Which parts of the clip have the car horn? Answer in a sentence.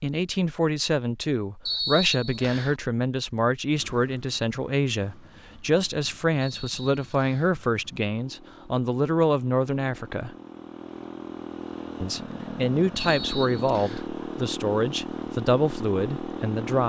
You can't hear the car horn here.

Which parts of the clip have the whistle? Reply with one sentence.
You can hear the whistle from 1.6 to 2.8 s, from 6.4 to 7.5 s and from 12.9 to 14.1 s.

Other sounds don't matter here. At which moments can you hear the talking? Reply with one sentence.
The talking can be heard from 0.0 to 10.3 s and from 12.0 to 16.8 s.